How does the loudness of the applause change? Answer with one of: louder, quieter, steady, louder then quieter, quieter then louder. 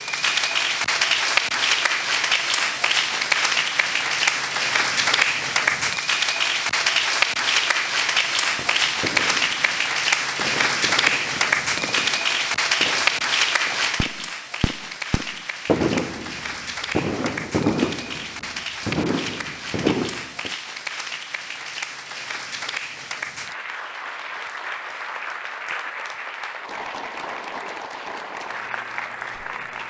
quieter.